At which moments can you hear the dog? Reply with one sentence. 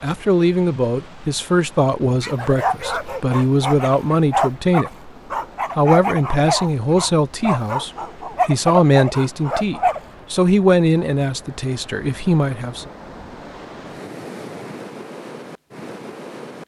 The dog can be heard from 2.2 to 10.0 s.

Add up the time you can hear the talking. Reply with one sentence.
You can hear the talking for 12 seconds altogether.